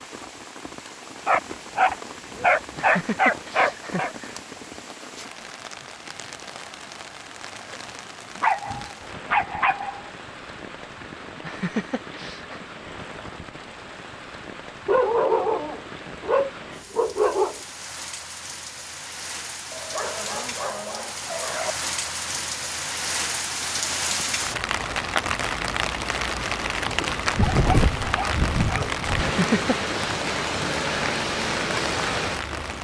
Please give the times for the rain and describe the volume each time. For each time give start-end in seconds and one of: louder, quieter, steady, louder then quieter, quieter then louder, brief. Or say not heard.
0.0-32.7 louder.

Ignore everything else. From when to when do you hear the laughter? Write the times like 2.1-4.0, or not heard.
2.8-4.4, 11.4-12.7, 29.2-29.9.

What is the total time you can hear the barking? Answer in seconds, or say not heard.
11 s.